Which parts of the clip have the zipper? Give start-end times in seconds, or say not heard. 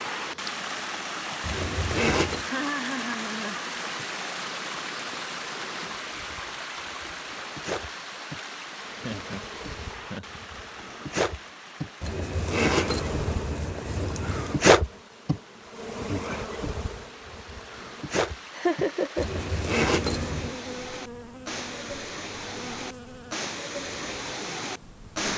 1.4-2.5, 12.0-14.6, 19.1-20.6.